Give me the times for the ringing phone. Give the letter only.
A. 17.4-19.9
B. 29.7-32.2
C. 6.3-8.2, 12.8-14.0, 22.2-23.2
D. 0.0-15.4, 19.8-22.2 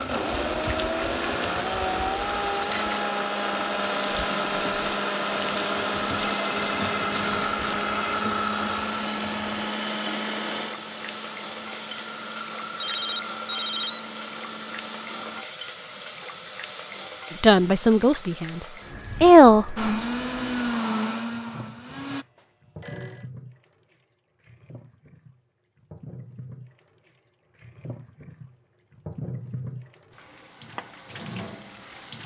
C.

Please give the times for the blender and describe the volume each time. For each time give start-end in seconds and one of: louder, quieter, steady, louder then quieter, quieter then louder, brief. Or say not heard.
0.0-15.4 quieter
19.8-22.2 brief.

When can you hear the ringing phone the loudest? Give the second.
14 s.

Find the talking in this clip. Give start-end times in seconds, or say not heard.
17.4-19.9.